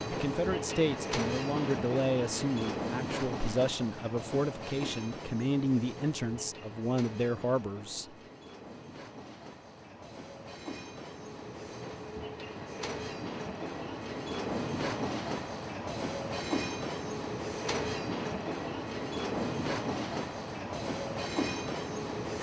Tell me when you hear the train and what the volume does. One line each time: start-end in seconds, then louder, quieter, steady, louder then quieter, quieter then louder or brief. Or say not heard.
0.0-22.3 quieter then louder.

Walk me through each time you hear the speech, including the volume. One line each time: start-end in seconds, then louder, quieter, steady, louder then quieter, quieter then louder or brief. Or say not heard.
0.0-8.2 steady.